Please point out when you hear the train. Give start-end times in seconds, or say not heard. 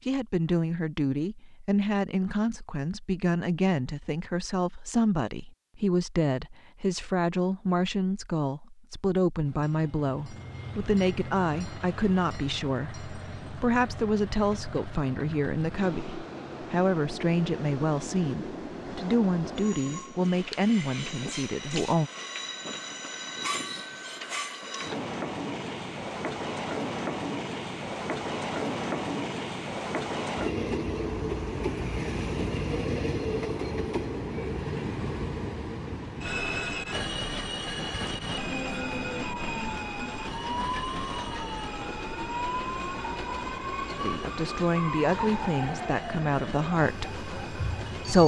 9.4-48.2.